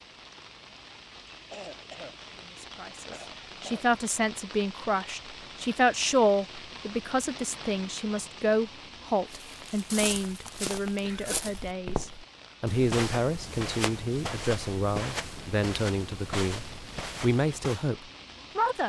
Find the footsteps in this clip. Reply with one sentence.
You can hear the footsteps from 9.2 to 17.9 s.